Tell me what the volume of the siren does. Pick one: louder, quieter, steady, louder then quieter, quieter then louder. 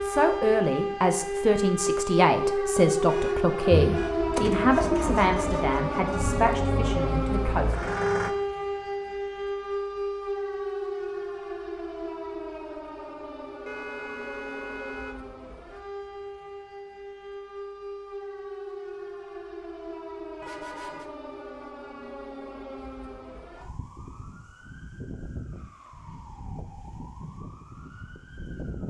quieter.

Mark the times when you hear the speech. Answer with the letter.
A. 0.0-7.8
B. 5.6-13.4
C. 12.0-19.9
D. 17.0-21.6
A.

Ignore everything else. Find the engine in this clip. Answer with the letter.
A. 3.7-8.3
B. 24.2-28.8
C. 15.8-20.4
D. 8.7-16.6
A.